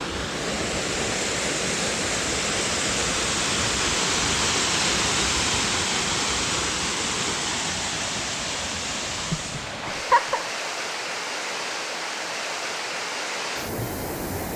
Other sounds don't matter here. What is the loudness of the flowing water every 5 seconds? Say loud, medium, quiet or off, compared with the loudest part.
loud, loud, medium.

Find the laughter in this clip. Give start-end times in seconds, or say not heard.
9.8-10.4.